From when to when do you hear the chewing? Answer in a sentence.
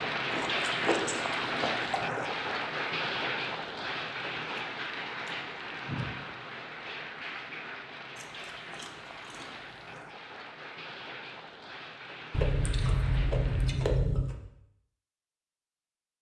The chewing can be heard from 0.3 to 2.3 s, from 4.5 to 6.2 s, from 8.2 to 10.1 s and from 12.3 to 14.4 s.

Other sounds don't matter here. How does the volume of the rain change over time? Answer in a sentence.
The volume of the rain goes down.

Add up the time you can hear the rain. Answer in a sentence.
You can hear the rain for 14 seconds altogether.